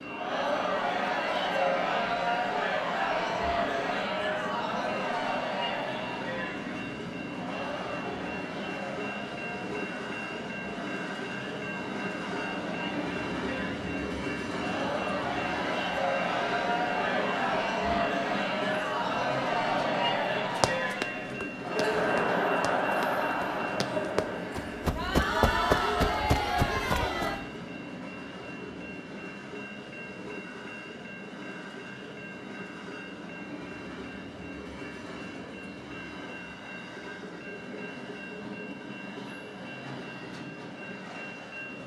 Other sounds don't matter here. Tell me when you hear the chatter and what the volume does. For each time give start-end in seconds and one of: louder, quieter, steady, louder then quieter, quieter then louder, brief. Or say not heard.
0.0-27.4 quieter then louder.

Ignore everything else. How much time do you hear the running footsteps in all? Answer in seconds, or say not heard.
7 s.